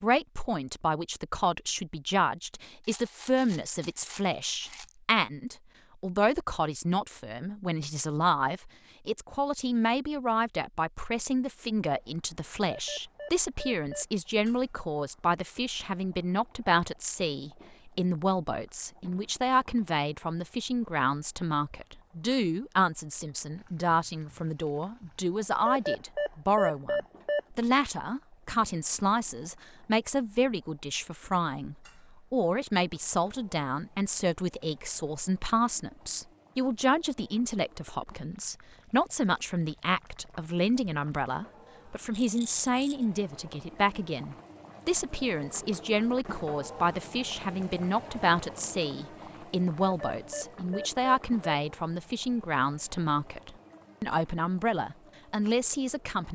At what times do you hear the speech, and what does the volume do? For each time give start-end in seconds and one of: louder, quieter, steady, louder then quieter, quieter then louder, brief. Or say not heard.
0.0-56.2 steady.